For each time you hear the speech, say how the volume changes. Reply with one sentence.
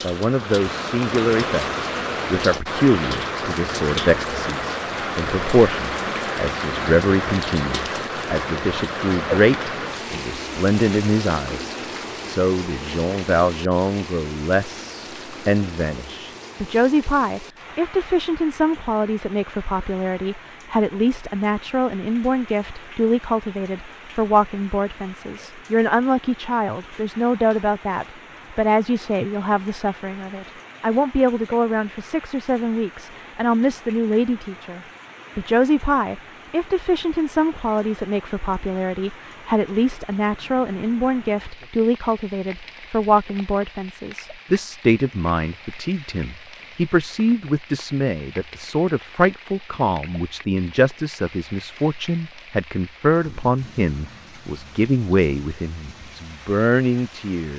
You can hear the speech from 0.0 to 57.5 s, at a steady volume.